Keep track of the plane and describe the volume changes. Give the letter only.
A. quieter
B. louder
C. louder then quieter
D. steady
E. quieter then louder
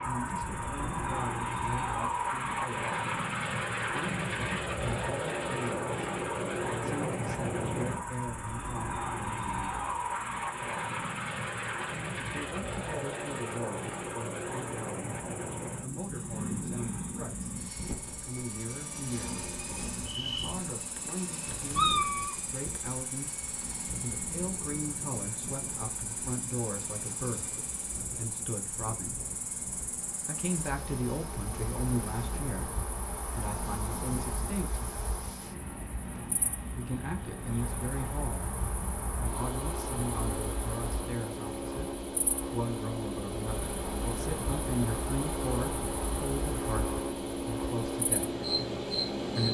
E.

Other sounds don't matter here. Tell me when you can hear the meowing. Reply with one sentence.
You can hear the meowing from 20.9 to 22.9 s.